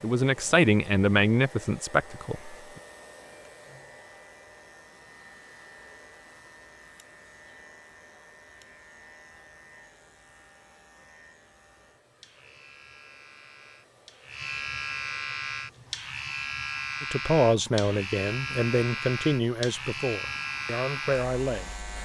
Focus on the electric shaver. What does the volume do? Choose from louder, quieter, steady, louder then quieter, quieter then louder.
louder.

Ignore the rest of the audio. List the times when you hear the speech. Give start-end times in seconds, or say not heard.
0.0-2.5, 17.0-21.8.